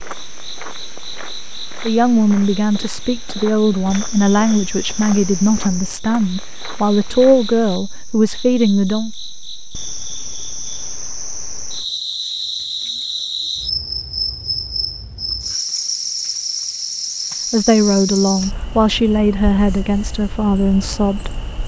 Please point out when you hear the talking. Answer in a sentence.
The talking can be heard from 1.9 to 9.1 s and from 17.5 to 21.4 s.